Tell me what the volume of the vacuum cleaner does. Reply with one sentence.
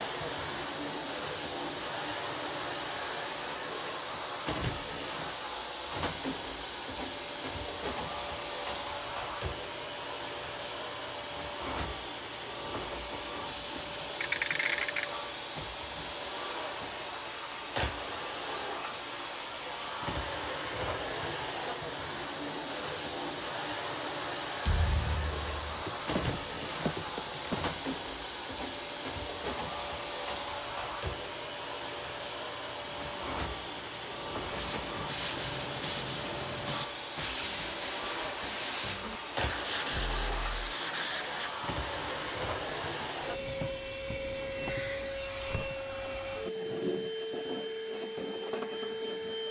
The loudness of the vacuum cleaner stays about the same.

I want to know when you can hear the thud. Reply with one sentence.
The thud can be heard from 24.6 to 25.9 s.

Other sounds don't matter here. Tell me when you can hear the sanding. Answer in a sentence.
You can hear the sanding from 32.9 to 43.5 s.